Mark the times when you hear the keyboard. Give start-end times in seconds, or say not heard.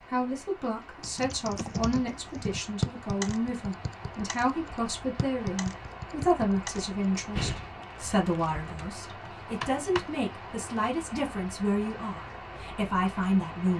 1.0-10.2.